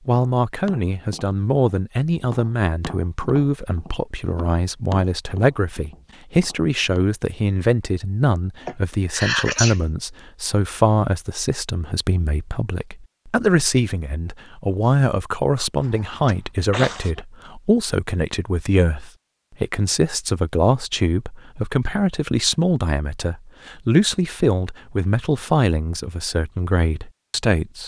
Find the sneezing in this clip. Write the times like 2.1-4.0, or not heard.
8.7-9.8, 15.8-17.2.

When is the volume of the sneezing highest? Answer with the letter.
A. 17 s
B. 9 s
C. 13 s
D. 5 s
B.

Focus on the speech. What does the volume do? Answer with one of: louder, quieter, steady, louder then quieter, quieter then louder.
steady.